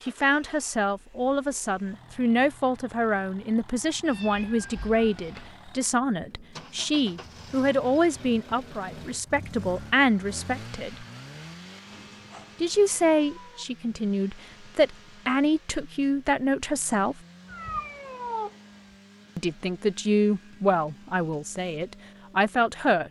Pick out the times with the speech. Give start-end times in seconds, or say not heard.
0.0-11.1, 12.6-17.2, 19.4-23.0.